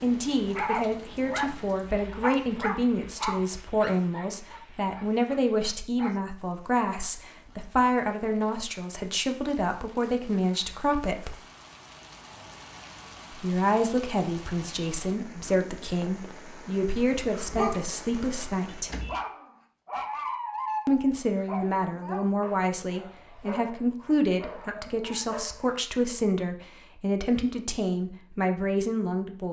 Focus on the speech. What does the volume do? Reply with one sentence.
The loudness of the speech stays about the same.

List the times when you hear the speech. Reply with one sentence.
The speech can be heard from 0.0 to 11.3 s, from 13.3 to 18.9 s and from 20.9 to 29.4 s.